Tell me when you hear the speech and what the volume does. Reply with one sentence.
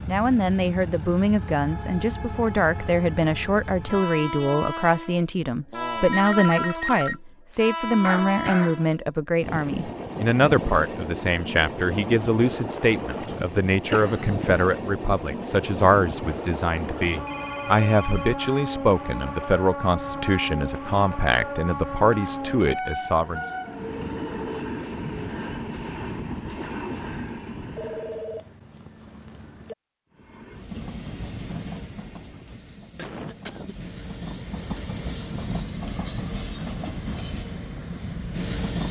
You can hear the speech from 0.1 to 23.5 s, at a steady volume.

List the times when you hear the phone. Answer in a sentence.
The phone can be heard from 5.7 to 7.2 s, from 17.1 to 18.4 s and from 27.8 to 29.8 s.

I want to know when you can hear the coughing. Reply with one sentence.
The coughing can be heard from 8.0 to 8.8 s, from 13.3 to 14.5 s and from 33.0 to 33.8 s.